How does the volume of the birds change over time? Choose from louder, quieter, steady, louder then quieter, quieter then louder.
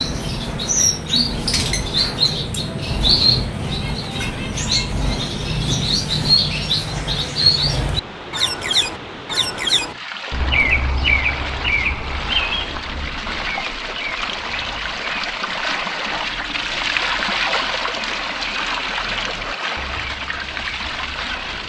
quieter.